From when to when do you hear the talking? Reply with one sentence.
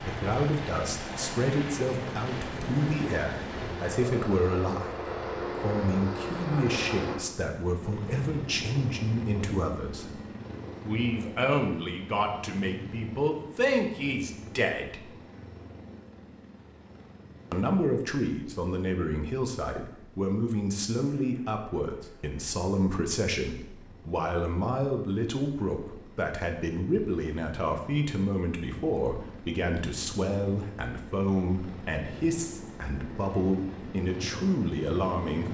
You can hear the talking from 0.0 to 10.2 s, from 10.8 to 15.1 s and from 17.5 to 35.5 s.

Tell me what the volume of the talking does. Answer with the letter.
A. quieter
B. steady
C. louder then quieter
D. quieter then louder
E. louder
B.